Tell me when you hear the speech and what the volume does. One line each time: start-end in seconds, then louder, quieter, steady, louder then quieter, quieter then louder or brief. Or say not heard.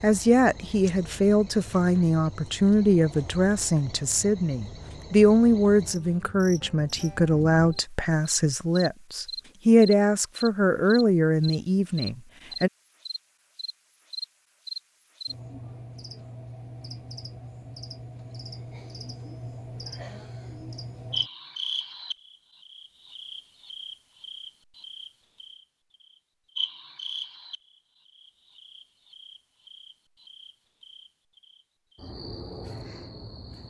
0.0-12.7 steady.